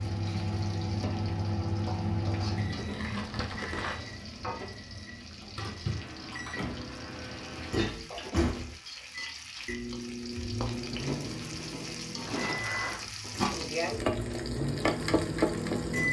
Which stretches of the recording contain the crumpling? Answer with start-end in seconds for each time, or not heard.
2.9-4.0, 12.2-13.2.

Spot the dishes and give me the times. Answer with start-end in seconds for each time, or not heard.
not heard.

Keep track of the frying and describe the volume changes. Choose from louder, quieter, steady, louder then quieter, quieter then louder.
louder.